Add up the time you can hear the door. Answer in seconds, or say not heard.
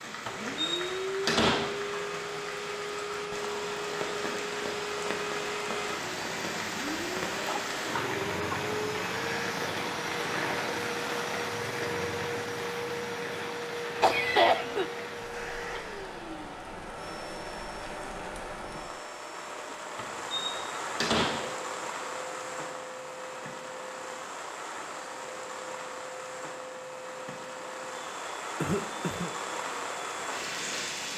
3 s.